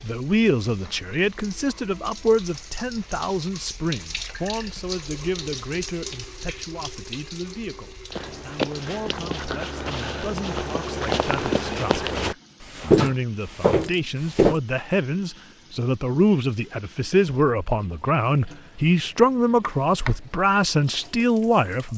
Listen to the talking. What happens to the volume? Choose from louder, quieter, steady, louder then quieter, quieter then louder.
quieter then louder.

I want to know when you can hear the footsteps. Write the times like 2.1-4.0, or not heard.
8.1-14.6.